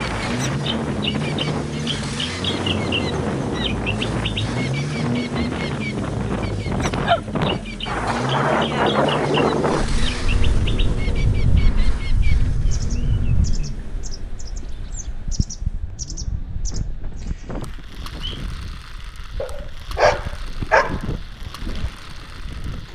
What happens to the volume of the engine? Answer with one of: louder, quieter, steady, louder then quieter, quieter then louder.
quieter.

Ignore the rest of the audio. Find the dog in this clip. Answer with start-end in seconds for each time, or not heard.
6.8-7.8, 19.4-21.0.